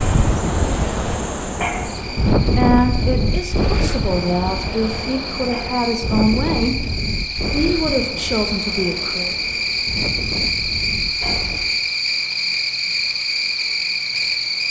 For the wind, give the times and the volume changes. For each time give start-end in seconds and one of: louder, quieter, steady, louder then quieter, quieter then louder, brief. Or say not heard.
0.0-11.9 quieter.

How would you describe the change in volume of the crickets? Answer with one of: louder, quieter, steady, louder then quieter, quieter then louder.
louder.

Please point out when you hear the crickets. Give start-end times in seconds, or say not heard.
0.0-14.6.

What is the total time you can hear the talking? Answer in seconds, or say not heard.
6 s.